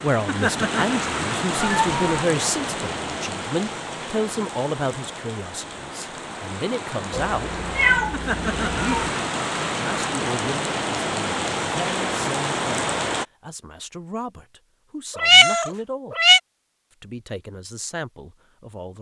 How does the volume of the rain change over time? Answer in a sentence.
The loudness of the rain goes down, then up.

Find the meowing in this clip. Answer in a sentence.
You can hear the meowing from 1.6 to 2.0 s, from 7.1 to 9.1 s and from 15.2 to 16.4 s.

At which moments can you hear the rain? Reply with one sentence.
You can hear the rain from 0.0 to 13.2 s.